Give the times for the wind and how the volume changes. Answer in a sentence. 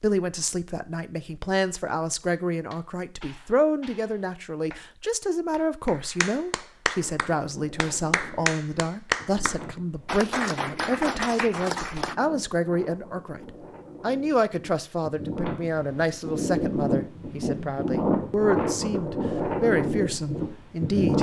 You can hear the wind from 7.0 to 21.1 s, getting louder.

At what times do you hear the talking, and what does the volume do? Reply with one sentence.
You can hear the talking from 0.0 to 21.1 s, at a steady volume.